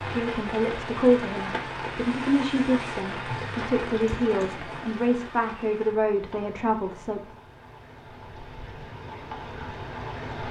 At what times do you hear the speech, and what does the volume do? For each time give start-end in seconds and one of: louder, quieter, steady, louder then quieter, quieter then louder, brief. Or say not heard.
0.0-7.3 steady.